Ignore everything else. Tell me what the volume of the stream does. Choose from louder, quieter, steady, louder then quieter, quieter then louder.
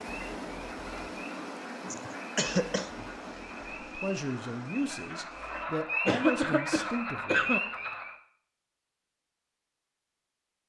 quieter.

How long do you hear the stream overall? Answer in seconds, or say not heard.
6 s.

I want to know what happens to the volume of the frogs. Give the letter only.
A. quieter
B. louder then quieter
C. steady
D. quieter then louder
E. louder
E.